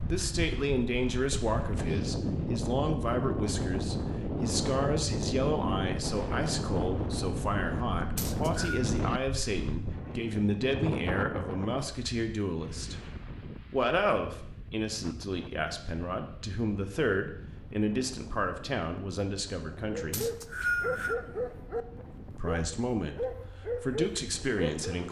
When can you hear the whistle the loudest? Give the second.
21 s.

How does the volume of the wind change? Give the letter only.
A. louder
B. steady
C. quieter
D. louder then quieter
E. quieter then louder
C.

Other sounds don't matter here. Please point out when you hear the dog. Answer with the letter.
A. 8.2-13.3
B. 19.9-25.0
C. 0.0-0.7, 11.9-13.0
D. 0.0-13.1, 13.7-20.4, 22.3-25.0
B.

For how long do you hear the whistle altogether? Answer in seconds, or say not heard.
2 s.